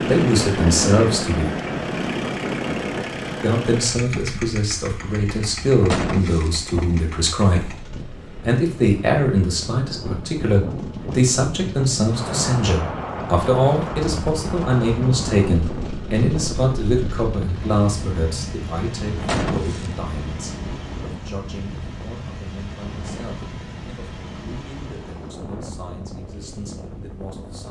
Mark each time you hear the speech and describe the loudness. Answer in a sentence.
You can hear the speech briefly from 0.1 to 1.4 s; and from 3.4 to 27.6 s, getting quieter.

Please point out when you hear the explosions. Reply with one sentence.
You can hear the explosions from 5.9 to 6.6 s and from 19.2 to 20.0 s.